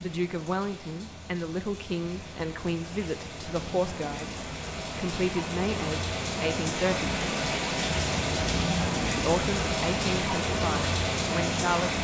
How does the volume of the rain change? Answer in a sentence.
The volume of the rain goes up.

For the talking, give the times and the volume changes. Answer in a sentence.
You can hear the talking from 0.0 to 4.3 s, at a steady volume; briefly from 5.0 to 7.2 s; and briefly from 9.2 to 11.9 s.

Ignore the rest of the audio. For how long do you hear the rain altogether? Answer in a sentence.
The rain can be heard for 12 seconds in total.